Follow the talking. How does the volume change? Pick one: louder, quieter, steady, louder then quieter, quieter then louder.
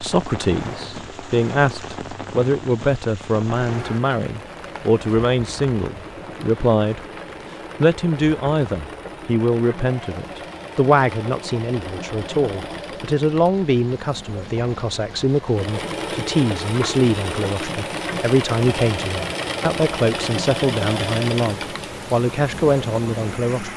steady.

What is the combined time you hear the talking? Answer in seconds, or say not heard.
23 s.